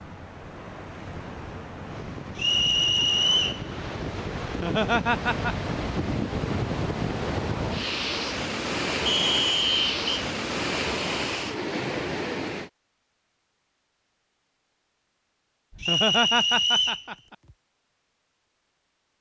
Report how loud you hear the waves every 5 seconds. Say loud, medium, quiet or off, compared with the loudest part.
medium, loud, loud, off.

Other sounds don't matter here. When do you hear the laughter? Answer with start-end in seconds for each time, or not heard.
4.5-5.5, 15.7-17.4.